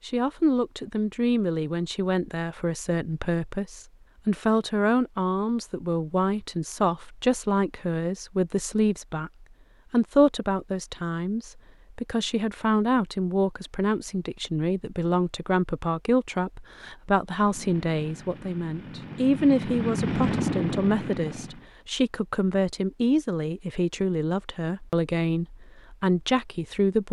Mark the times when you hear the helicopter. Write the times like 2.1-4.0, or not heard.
17.4-21.7.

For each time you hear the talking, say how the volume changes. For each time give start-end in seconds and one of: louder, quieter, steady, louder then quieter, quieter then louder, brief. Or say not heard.
0.0-27.0 steady.